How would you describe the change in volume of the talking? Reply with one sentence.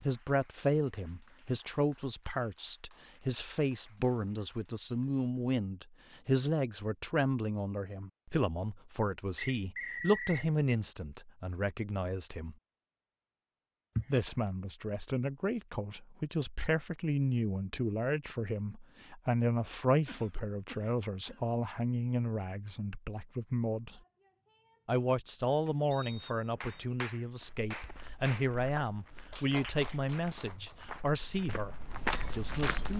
The volume of the talking stays about the same.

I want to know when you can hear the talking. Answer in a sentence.
The talking can be heard from 0.0 to 12.6 s, from 14.1 to 24.0 s and from 24.9 to 32.9 s.